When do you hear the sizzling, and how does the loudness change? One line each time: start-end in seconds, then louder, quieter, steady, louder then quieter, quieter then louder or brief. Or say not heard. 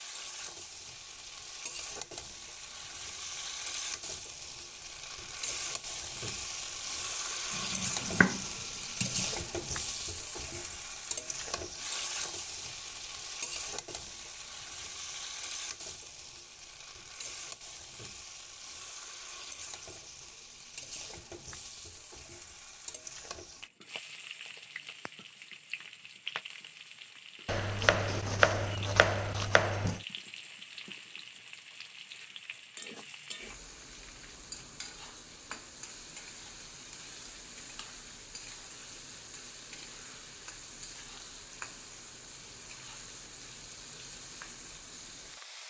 0.0-45.6 quieter.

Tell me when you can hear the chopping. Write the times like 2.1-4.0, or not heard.
7.5-9.2, 27.4-30.0.